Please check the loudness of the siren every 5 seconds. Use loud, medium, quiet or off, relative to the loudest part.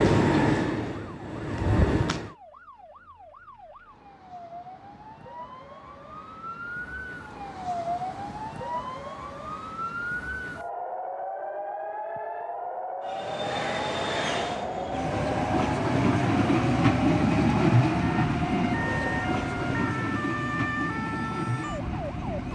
quiet, loud, loud, loud, loud.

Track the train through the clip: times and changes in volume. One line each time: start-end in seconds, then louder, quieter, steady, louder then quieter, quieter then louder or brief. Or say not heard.
0.0-2.3 brief
13.1-22.5 louder then quieter.